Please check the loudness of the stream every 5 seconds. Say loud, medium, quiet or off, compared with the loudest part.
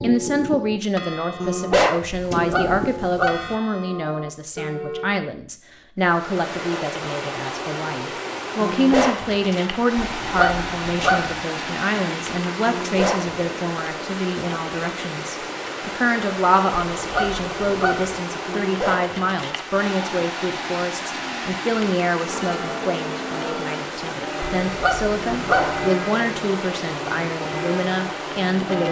off, loud, loud, loud, loud, loud.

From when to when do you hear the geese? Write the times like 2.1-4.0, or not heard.
2.1-3.5, 10.0-11.4, 16.9-18.2, 24.6-25.9.